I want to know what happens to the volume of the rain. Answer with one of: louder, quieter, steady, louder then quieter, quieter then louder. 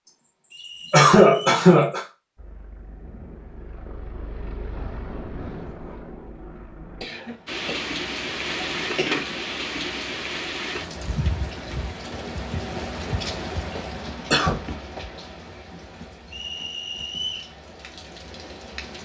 quieter.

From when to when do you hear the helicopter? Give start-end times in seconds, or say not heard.
2.4-7.0.